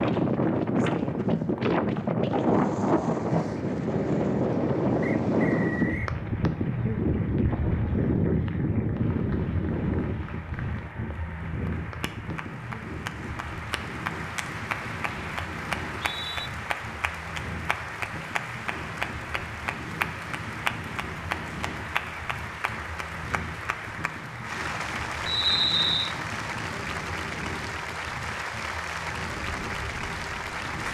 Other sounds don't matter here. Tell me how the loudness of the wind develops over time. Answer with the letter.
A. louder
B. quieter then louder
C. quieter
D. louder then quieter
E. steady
C.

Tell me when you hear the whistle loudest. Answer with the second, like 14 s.
26 s.